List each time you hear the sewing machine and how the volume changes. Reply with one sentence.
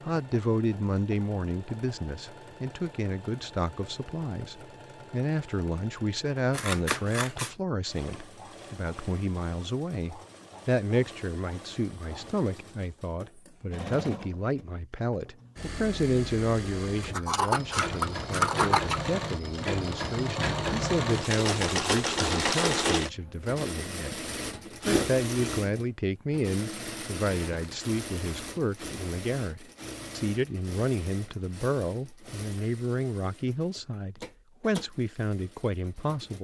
You can hear the sewing machine from 0.0 to 36.3 s, getting louder then quieter.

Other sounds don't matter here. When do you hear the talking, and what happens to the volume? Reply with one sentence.
The talking can be heard from 0.0 to 36.3 s, at a steady volume.